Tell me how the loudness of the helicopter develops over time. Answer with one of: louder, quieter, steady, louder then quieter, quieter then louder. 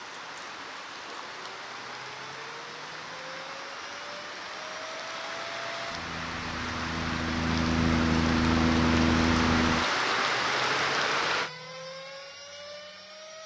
louder then quieter.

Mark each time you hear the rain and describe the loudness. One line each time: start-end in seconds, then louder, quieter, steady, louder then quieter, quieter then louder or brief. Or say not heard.
0.0-11.5 louder.